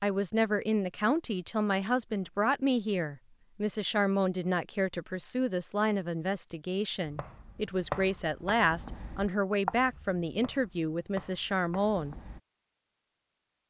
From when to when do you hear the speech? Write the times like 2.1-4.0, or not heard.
0.0-12.2.